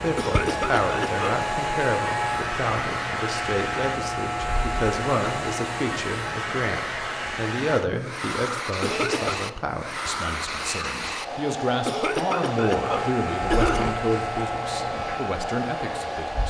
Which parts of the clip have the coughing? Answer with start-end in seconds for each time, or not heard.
0.1-1.4, 8.8-9.4, 11.8-14.0.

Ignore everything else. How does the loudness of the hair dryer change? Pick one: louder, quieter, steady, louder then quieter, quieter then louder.
steady.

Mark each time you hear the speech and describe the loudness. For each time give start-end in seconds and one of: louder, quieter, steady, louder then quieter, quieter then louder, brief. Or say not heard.
0.0-16.4 steady.